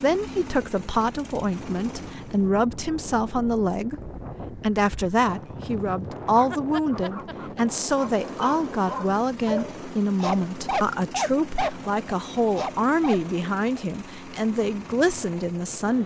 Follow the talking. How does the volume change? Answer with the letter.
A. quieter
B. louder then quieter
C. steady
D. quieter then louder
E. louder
C.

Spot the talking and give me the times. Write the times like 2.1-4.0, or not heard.
0.0-16.0.